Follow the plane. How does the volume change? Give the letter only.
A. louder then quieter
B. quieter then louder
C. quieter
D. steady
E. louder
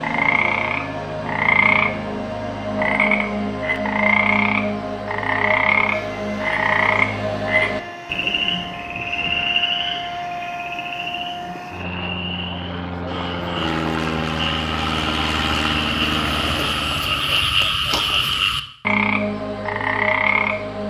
E.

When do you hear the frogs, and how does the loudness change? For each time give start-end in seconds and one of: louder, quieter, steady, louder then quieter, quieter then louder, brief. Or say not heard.
0.0-20.8 quieter then louder.